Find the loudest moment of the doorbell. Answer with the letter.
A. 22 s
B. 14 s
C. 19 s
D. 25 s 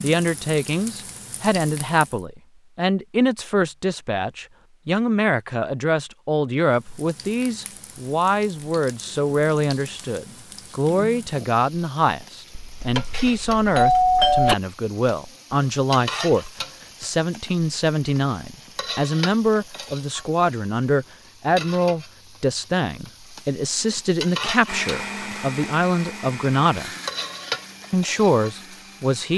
B.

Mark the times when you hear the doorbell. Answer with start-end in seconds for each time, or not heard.
12.6-14.6.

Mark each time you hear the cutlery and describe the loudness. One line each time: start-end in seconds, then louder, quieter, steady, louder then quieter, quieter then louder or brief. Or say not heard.
not heard.